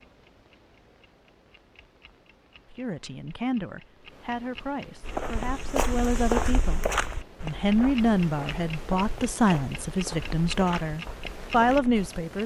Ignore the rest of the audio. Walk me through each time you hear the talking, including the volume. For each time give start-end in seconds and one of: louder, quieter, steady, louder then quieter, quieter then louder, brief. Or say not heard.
2.7-12.4 louder.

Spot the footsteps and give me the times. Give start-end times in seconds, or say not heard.
5.0-12.1.